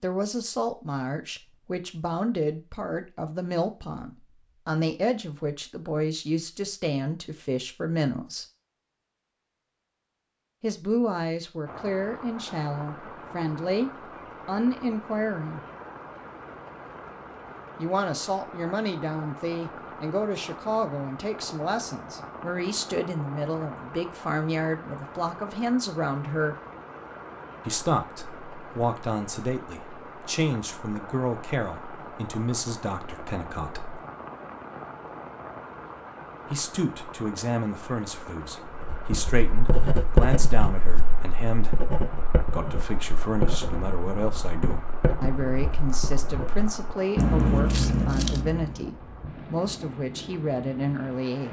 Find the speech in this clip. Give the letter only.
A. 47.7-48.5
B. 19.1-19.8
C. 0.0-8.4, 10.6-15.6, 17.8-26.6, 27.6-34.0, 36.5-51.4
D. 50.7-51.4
C.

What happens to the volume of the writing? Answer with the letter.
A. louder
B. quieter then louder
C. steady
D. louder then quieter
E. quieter
B.